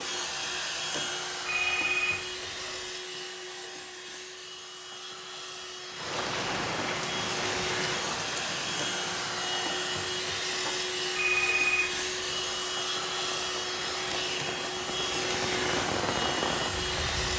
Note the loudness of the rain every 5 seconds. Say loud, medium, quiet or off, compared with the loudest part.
off, loud, medium, loud.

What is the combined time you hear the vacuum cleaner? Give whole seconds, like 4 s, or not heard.
17 s.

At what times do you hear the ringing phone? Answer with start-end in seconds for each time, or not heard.
1.4-2.9, 11.2-12.6.